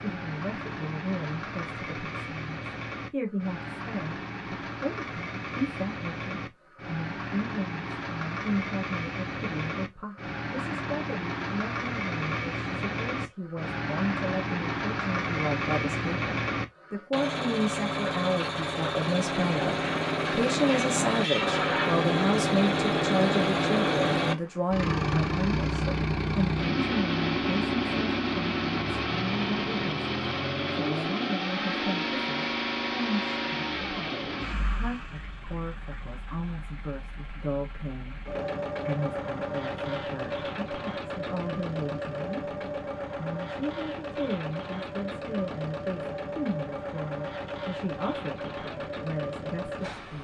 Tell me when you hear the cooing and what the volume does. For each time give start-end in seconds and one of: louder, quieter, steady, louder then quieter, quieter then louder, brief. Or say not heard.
not heard.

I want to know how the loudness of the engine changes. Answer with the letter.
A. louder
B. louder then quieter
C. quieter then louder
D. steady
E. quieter
B.